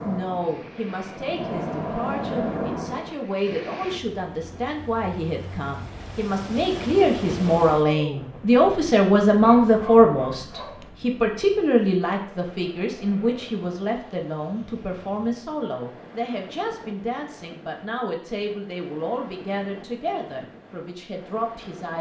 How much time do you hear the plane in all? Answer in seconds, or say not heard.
3 s.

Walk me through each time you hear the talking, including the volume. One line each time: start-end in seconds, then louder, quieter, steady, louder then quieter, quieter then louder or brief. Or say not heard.
0.0-21.9 louder then quieter.